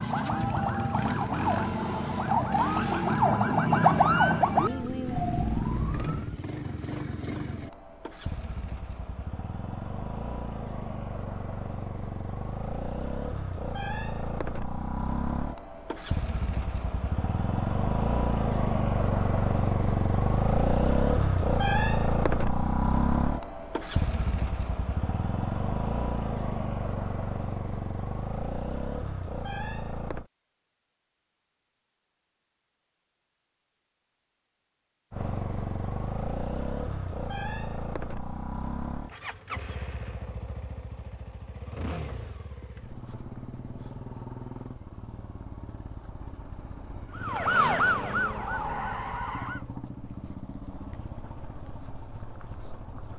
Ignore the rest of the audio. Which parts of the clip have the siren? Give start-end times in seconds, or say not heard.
0.0-6.3, 47.1-49.6.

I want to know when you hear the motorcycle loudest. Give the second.
21 s.